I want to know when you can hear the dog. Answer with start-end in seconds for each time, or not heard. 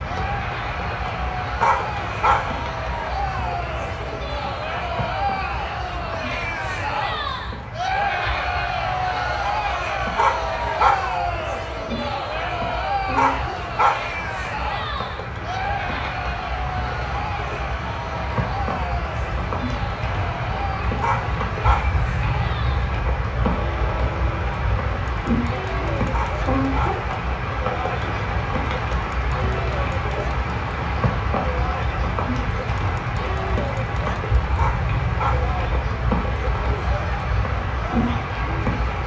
1.6-2.6, 10.2-11.2, 13.2-14.2, 21.0-22.0, 26.1-27.1, 34.5-35.5.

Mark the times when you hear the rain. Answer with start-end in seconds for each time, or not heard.
0.0-39.0.